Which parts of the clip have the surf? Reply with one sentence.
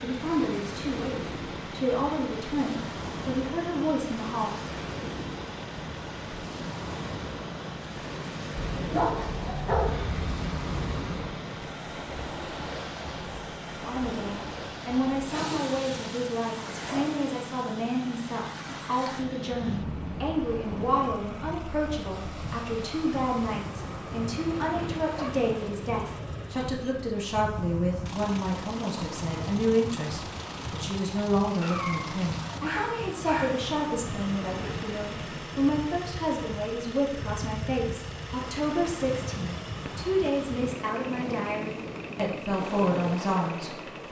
The surf can be heard from 0.0 to 44.0 s.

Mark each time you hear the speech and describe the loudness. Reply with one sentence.
You can hear the speech from 0.0 to 4.6 s, at a steady volume; and from 13.8 to 44.0 s, at a steady volume.